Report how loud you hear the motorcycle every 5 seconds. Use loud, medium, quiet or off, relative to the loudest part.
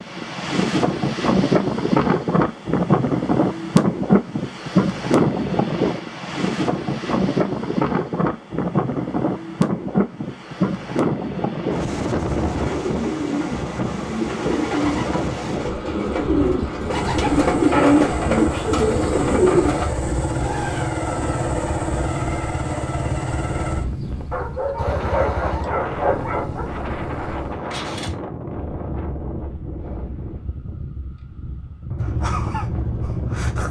off, off, off, loud, loud, medium, loud.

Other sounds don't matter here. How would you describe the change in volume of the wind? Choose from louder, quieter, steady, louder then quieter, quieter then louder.
quieter.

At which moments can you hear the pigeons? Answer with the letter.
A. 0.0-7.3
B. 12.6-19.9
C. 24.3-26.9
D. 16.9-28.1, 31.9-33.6
B.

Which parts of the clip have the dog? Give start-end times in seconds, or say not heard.
24.3-26.9.